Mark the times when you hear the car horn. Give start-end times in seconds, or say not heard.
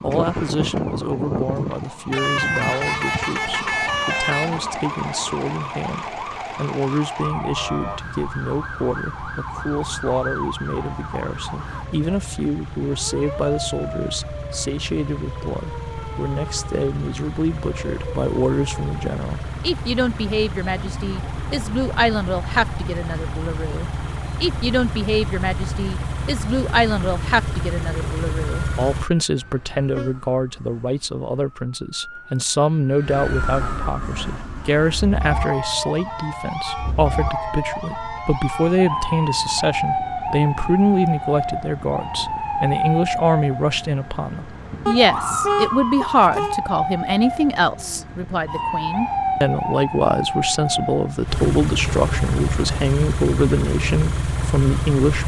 2.1-4.6, 29.4-30.1, 44.9-46.5.